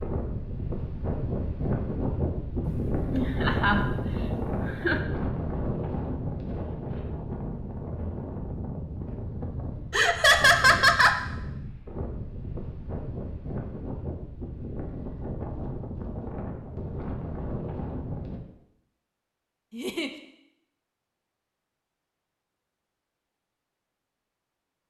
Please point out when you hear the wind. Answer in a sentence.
You can hear the wind from 0.0 to 18.4 s.